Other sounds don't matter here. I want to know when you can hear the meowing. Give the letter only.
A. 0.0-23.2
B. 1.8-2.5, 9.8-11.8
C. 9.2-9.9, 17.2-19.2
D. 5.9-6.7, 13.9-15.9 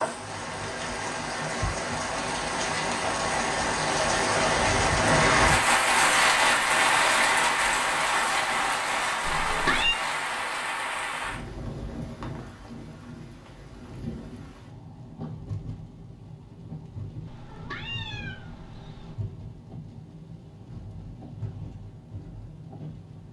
C.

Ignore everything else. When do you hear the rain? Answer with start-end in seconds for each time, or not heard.
0.0-23.2.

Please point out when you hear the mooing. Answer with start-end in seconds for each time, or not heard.
not heard.